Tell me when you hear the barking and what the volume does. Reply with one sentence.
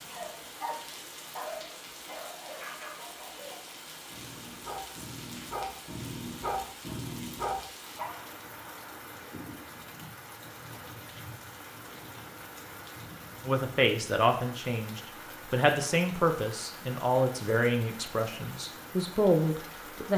You can hear the barking from 0.1 to 8.2 s, getting quieter then louder.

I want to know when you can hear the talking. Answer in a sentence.
The talking can be heard from 13.4 to 20.1 s.